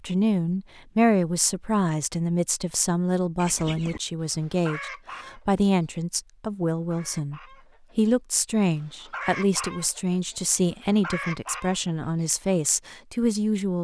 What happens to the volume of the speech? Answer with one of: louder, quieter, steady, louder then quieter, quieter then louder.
steady.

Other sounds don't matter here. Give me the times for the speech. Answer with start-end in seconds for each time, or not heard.
0.0-13.7.